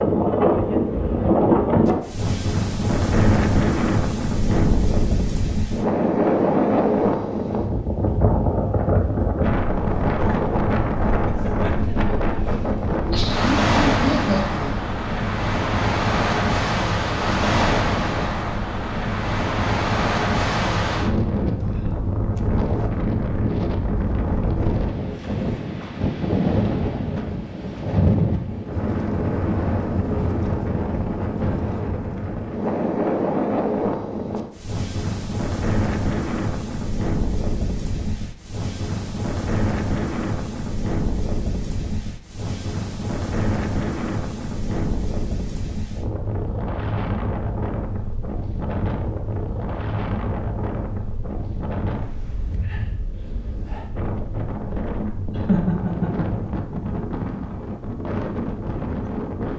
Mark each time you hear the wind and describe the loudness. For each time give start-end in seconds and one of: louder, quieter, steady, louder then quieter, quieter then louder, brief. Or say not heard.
0.0-59.5 quieter.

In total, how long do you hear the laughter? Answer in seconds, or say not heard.
3 s.